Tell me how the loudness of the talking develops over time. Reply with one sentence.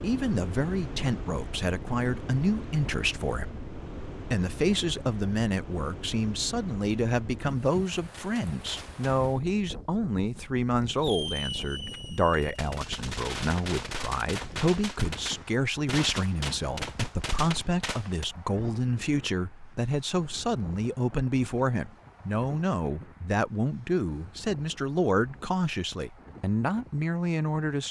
The loudness of the talking stays about the same.